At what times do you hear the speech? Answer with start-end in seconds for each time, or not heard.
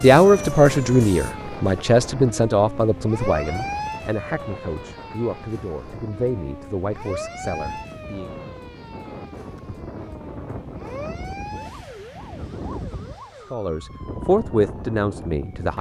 0.0-8.3, 13.5-15.7.